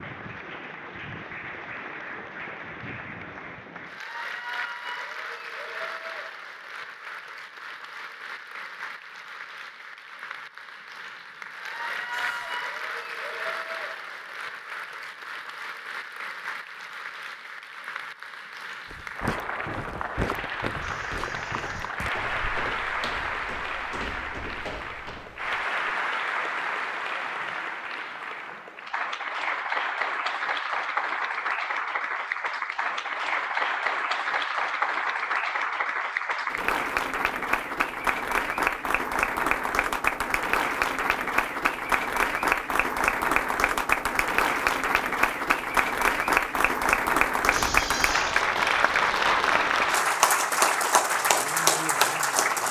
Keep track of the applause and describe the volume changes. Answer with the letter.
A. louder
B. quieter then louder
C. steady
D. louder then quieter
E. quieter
A.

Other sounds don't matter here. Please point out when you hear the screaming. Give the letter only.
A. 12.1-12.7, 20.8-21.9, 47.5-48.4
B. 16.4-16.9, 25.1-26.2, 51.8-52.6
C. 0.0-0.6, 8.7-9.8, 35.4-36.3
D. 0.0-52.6
A.